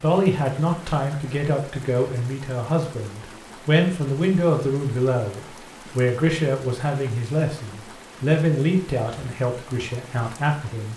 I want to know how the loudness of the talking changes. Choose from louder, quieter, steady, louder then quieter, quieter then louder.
steady.